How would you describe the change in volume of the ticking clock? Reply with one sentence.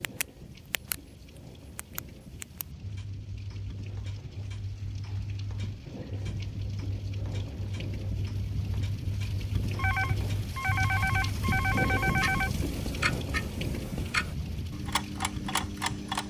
The volume of the ticking clock goes up.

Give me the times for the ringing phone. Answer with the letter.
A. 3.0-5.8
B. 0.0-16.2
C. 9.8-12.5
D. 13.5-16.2
C.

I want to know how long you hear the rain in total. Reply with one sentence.
You can hear the rain for 16 seconds altogether.